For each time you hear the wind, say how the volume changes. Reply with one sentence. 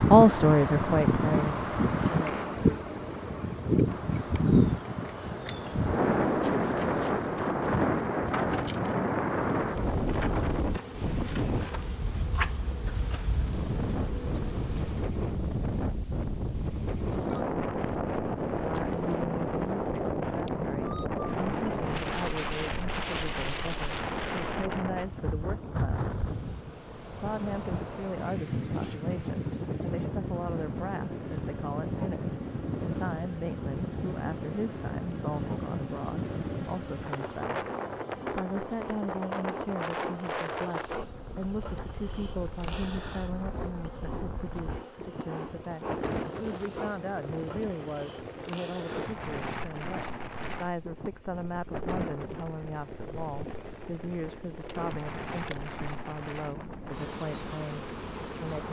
You can hear the wind from 0.0 to 58.6 s, getting quieter.